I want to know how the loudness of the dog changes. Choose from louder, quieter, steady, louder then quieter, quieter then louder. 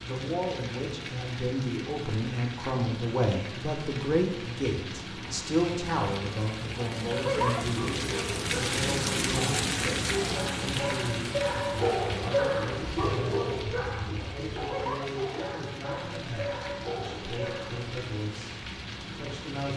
louder then quieter.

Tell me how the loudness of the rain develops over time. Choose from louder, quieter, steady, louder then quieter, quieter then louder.
louder then quieter.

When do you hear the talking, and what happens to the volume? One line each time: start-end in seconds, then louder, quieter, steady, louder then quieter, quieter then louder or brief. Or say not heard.
0.0-19.7 quieter.